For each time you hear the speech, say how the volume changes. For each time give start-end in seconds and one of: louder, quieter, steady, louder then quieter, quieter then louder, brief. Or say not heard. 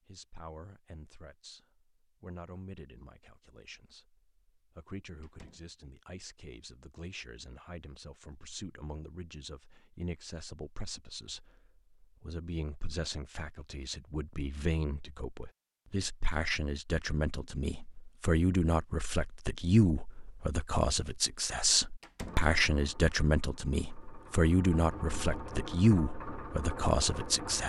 0.1-27.6 louder.